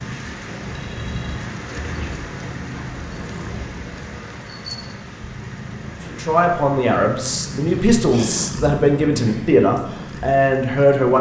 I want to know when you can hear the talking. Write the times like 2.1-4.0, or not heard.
6.0-11.1.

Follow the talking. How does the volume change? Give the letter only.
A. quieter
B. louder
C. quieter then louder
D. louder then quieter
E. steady
E.